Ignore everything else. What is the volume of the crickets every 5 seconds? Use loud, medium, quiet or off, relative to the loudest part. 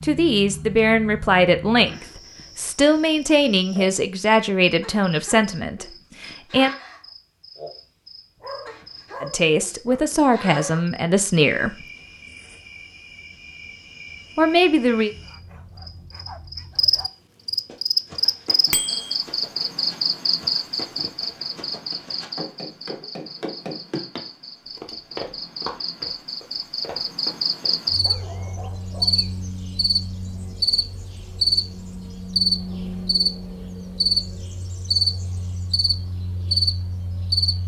quiet, quiet, quiet, loud, medium, loud, loud, loud.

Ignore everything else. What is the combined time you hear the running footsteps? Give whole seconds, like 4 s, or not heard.
10 s.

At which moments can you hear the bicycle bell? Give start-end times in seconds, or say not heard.
18.7-19.1.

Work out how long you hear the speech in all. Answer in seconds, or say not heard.
10 s.